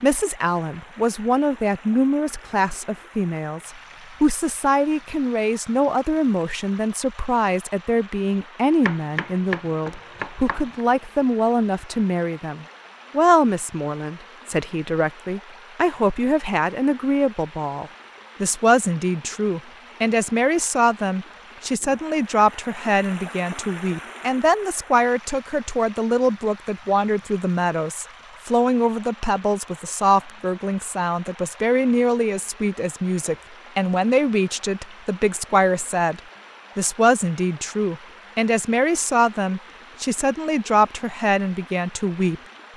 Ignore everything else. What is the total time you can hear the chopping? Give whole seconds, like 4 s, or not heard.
2 s.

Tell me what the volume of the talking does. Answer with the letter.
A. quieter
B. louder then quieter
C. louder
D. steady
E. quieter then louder
D.